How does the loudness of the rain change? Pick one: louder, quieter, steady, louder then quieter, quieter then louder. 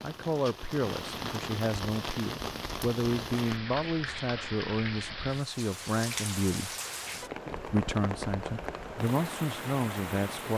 steady.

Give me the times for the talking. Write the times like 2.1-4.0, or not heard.
0.0-6.7, 7.7-10.5.